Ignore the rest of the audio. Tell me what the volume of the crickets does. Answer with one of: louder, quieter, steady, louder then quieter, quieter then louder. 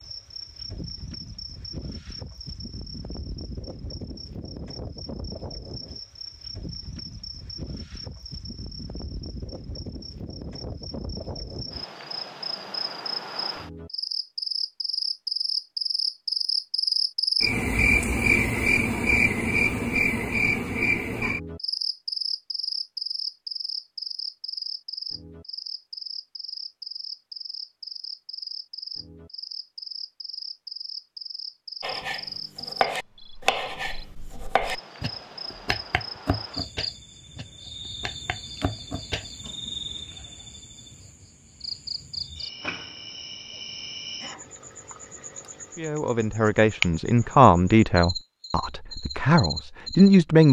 louder then quieter.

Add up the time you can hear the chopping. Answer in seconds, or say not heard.
8 s.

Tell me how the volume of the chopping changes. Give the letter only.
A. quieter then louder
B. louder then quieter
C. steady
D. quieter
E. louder
D.